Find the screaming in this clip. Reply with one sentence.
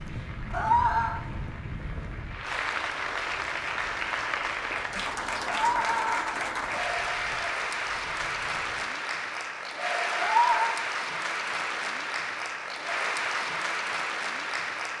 You can hear the screaming from 0.5 to 1.2 s, from 5.5 to 6.5 s and from 10.2 to 10.8 s.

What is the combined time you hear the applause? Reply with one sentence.
The applause can be heard for 15 seconds in total.